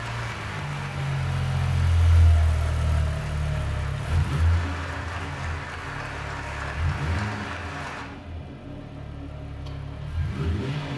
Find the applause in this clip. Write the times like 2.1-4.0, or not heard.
0.0-8.1.